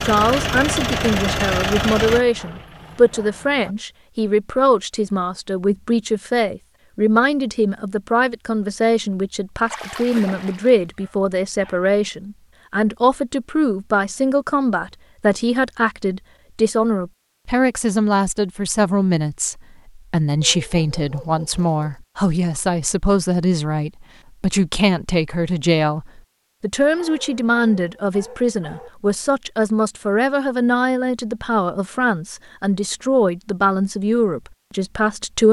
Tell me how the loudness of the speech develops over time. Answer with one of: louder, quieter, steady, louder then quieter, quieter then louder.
steady.